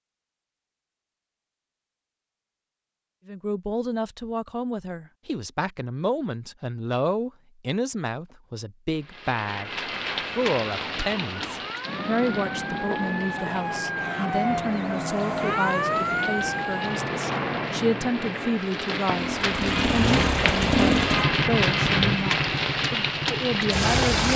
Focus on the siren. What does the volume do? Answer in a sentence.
The volume of the siren goes up.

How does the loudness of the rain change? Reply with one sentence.
The volume of the rain goes up.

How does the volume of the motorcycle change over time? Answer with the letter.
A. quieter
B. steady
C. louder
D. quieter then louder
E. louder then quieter
A.